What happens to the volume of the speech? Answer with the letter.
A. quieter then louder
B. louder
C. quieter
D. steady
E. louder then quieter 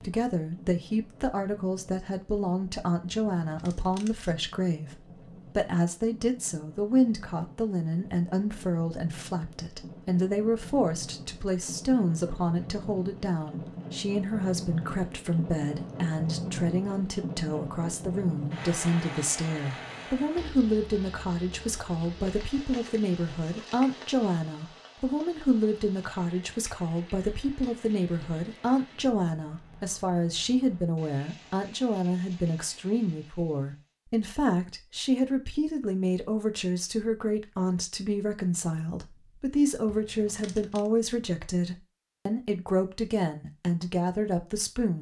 D.